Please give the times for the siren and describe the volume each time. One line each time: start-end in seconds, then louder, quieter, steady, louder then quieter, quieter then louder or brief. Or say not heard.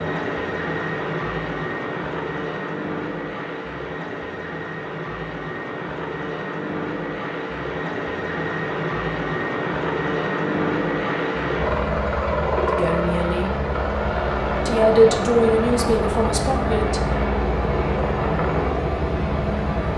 not heard.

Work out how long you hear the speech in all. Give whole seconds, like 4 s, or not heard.
3 s.